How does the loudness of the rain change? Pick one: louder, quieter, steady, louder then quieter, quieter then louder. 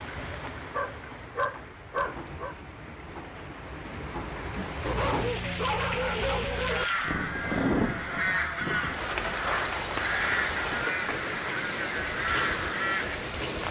louder.